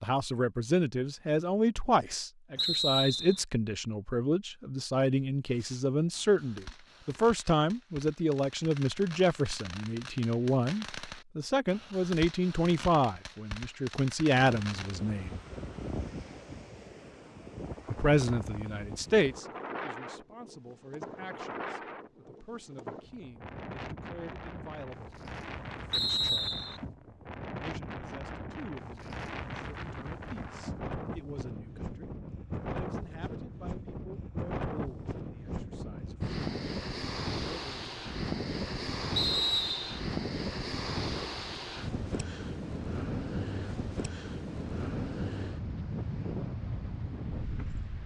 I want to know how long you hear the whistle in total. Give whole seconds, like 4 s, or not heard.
3 s.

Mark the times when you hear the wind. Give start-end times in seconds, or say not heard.
14.3-48.0.